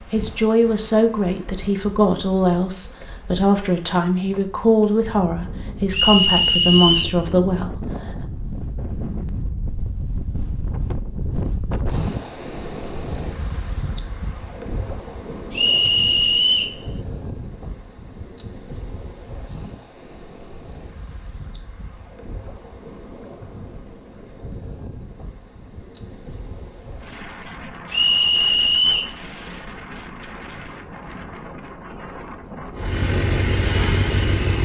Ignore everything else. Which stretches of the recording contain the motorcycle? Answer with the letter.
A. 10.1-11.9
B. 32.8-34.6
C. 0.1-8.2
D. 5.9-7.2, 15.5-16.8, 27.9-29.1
B.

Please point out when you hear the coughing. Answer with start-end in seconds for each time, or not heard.
not heard.